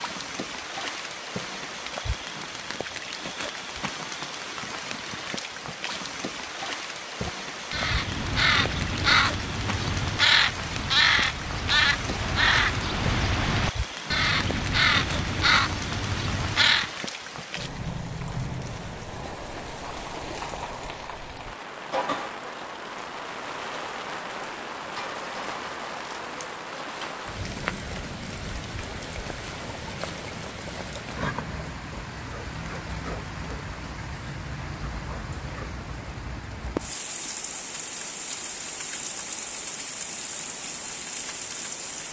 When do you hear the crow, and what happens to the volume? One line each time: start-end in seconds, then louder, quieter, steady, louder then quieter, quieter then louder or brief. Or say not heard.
7.2-16.9 steady.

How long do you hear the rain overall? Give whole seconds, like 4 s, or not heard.
42 s.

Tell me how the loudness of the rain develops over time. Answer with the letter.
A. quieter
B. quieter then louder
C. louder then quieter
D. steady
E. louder
D.